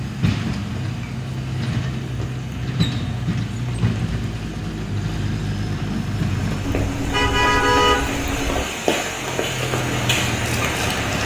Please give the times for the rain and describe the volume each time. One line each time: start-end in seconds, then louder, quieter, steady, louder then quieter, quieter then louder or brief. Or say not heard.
0.0-11.2 louder.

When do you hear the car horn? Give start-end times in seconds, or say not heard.
6.6-8.7.